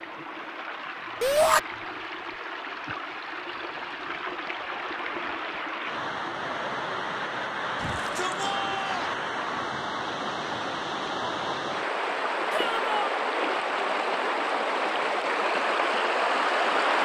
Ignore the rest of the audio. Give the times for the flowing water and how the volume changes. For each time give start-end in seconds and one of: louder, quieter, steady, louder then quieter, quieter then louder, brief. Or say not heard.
0.0-17.0 louder.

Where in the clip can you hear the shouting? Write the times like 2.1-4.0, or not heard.
1.2-1.6, 7.8-9.2, 12.5-13.2.